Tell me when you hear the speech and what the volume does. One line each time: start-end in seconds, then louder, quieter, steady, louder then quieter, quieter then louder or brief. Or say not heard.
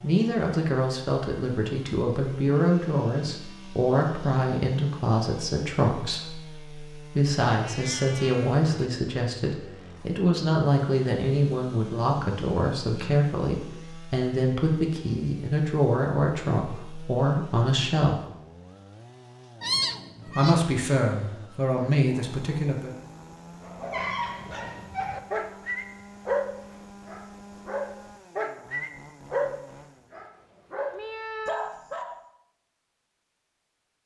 0.0-18.2 steady
20.2-22.9 brief.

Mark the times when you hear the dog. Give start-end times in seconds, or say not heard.
23.6-32.2.